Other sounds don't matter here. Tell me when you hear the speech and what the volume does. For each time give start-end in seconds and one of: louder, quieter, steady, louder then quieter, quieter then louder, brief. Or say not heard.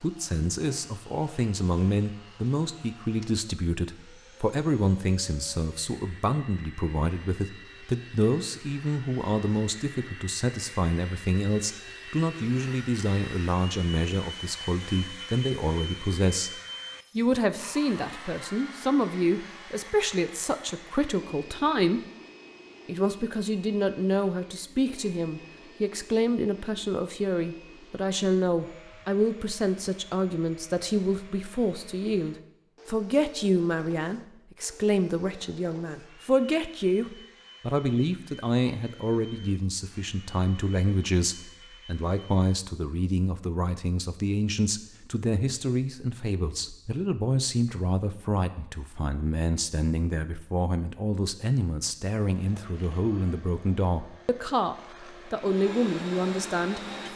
0.0-22.0 steady
22.9-57.0 steady.